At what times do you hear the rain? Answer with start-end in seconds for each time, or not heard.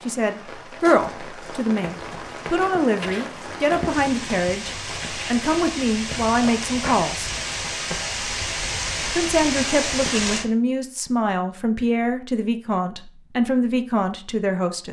0.0-10.4.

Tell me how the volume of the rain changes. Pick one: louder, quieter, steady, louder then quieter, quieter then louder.
louder.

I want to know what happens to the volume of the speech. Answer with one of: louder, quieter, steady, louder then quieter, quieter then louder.
steady.